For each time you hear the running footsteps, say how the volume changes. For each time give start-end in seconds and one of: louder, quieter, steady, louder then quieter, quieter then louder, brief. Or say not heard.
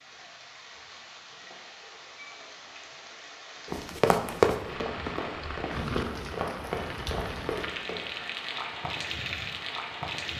3.7-8.0 quieter.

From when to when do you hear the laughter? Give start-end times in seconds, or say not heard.
not heard.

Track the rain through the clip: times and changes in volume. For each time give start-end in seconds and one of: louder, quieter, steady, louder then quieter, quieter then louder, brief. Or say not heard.
0.0-10.3 louder.